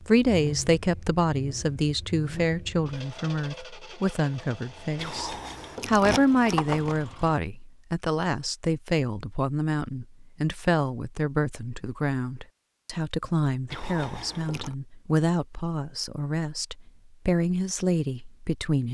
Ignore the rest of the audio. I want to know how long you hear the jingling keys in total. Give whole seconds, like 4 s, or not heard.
3 s.